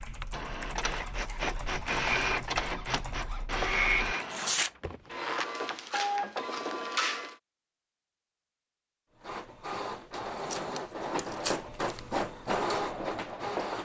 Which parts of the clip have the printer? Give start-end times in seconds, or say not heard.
0.2-7.3, 9.2-13.7.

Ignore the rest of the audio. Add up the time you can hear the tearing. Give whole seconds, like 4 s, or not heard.
2 s.